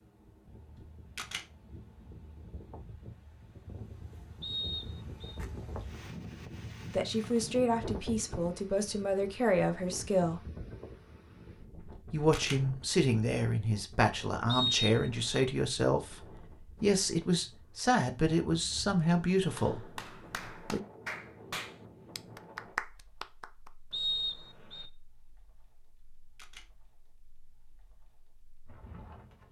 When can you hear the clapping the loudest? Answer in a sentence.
The volume of the clapping peaks at 23 seconds.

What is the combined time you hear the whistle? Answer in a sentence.
You can hear the whistle for 3 seconds altogether.